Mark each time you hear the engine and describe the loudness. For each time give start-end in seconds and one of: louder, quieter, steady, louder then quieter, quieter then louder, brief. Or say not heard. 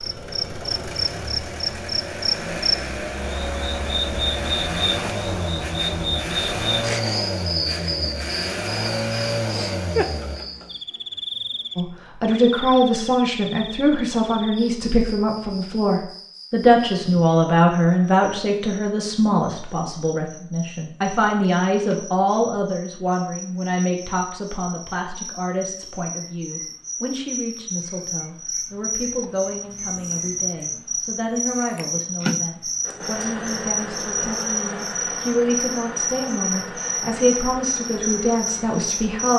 0.0-10.4 louder
32.8-39.3 quieter.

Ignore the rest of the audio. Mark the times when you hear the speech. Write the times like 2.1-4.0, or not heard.
11.8-39.3.